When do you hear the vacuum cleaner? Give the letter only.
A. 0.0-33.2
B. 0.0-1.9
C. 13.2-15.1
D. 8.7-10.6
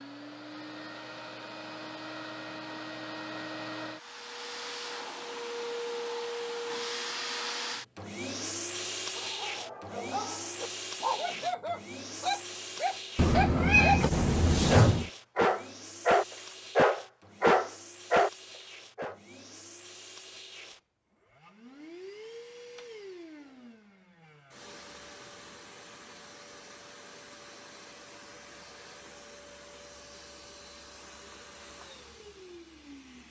A.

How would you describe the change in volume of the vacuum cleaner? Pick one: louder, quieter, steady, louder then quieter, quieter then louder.
quieter.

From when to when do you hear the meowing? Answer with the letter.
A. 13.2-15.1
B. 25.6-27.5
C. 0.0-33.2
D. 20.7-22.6
A.